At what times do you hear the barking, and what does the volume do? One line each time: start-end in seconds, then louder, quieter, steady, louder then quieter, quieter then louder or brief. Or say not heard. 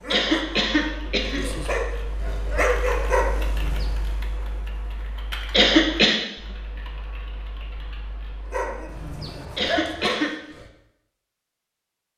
0.0-4.0 louder
8.5-10.7 brief.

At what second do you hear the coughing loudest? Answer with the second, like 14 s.
6 s.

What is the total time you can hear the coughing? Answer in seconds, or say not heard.
3 s.